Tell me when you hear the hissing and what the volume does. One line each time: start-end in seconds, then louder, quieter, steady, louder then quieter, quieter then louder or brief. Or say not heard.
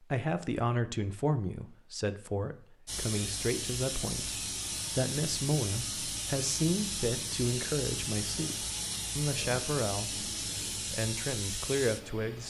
2.9-12.4 steady.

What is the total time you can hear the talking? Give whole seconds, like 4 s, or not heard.
12 s.